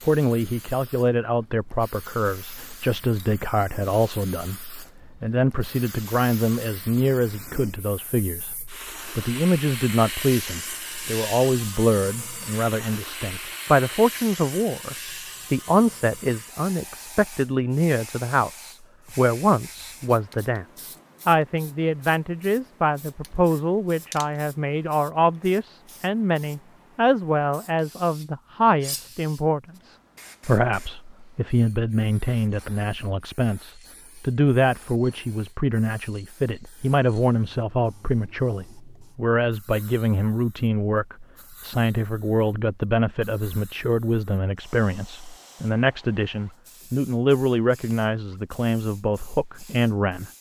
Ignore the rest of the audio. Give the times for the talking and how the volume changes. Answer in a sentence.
The talking can be heard from 0.1 to 50.3 s, at a steady volume.